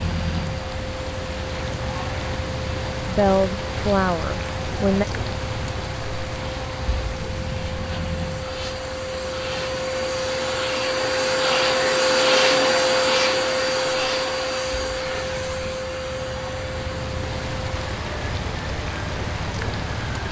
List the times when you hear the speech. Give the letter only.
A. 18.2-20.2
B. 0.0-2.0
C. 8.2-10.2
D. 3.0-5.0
D.